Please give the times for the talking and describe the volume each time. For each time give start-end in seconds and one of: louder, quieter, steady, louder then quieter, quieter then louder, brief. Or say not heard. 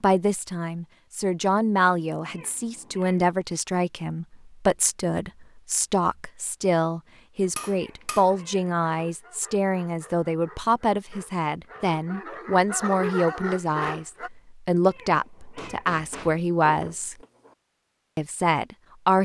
0.0-17.1 steady
18.1-19.2 brief.